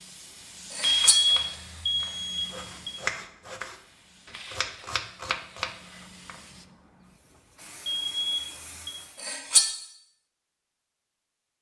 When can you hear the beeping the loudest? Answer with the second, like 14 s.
1 s.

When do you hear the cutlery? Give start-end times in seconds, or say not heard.
0.7-1.2, 9.2-9.7.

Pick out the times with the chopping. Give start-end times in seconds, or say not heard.
1.0-6.4.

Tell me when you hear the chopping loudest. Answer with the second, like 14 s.
3 s.